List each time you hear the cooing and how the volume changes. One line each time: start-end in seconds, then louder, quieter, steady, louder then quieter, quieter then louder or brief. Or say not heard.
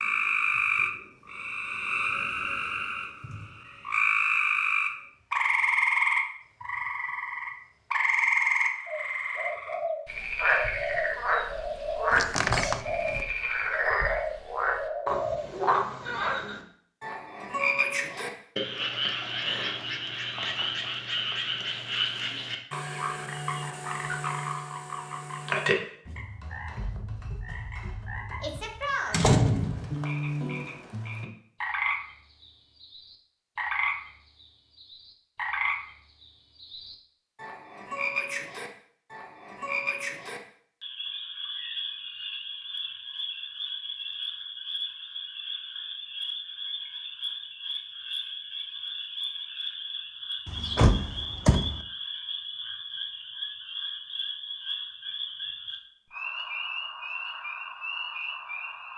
8.8-15.5 steady.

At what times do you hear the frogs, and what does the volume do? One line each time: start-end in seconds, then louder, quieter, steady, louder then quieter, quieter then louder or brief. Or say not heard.
0.0-58.9 quieter.